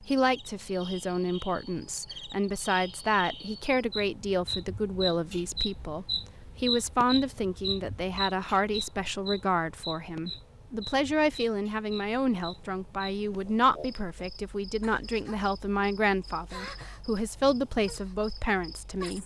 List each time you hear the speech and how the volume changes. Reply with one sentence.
The speech can be heard from 0.1 to 19.2 s, at a steady volume.